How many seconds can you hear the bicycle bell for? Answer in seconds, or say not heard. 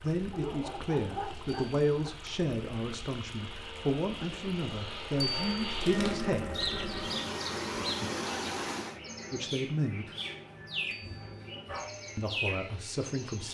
2 s.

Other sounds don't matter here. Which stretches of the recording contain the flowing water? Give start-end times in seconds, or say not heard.
0.0-9.0.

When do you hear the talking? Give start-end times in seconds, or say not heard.
0.0-6.5, 9.3-10.1, 12.2-13.4.